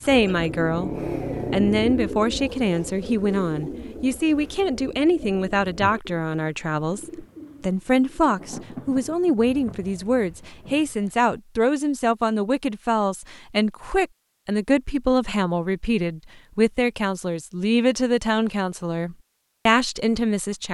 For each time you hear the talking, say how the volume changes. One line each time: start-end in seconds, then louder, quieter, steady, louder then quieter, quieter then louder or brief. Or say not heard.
0.0-0.9 brief
1.5-20.6 steady.